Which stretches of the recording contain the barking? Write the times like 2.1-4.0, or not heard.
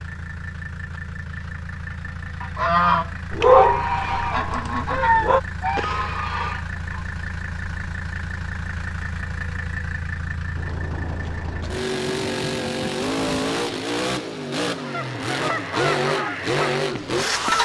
3.3-5.4.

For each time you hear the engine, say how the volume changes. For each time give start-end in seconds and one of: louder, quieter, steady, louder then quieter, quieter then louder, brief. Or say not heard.
0.0-17.5 louder.